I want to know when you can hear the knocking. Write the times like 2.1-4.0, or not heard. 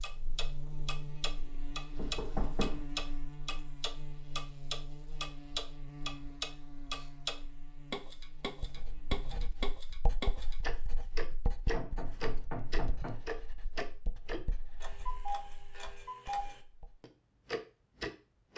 1.9-2.9, 11.7-13.2.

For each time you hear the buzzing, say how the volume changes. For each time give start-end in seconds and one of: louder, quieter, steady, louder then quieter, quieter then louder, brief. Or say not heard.
0.0-9.5 quieter.